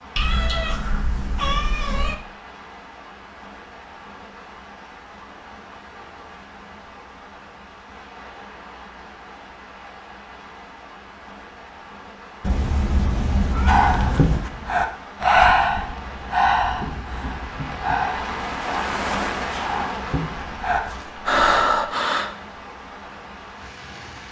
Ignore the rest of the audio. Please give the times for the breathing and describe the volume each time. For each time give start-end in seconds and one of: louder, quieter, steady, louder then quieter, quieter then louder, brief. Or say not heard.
13.7-22.3 quieter then louder.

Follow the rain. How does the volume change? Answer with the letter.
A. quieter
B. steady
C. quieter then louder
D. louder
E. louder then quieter
D.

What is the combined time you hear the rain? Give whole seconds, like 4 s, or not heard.
24 s.